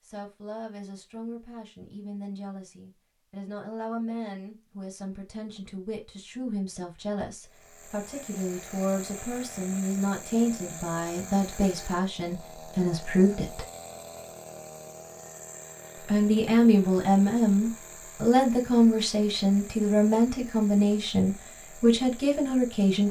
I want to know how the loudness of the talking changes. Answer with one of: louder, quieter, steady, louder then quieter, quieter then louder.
louder.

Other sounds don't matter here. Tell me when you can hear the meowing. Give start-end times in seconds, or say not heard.
not heard.